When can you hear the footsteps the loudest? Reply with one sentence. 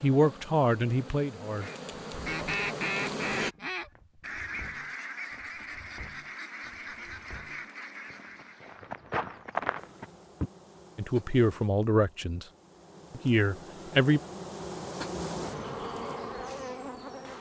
The volume of the footsteps peaks at 10 seconds.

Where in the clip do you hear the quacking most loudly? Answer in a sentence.
The volume of the quacking peaks at 3 seconds.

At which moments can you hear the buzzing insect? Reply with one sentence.
The buzzing insect can be heard from 0.0 to 3.5 s and from 9.8 to 17.3 s.